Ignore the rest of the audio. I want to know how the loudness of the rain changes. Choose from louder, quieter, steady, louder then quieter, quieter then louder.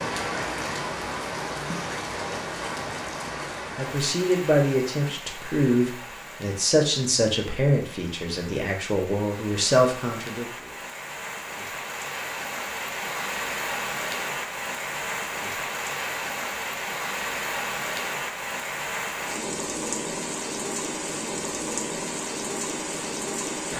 quieter then louder.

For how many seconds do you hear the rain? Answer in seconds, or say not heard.
24 s.